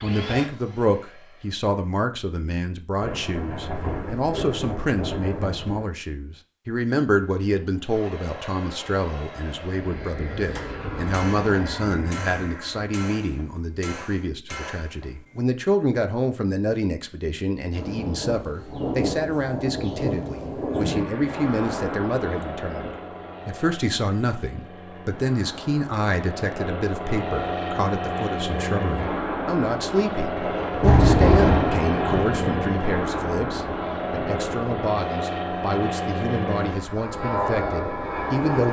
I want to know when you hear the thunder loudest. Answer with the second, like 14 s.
31 s.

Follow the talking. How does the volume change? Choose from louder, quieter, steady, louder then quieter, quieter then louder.
steady.